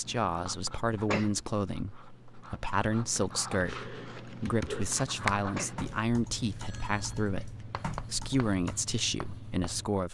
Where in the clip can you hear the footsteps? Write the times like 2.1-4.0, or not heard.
not heard.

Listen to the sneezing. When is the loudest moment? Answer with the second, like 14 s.
1 s.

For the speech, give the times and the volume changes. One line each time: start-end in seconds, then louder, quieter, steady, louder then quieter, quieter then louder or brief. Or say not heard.
0.0-10.0 steady.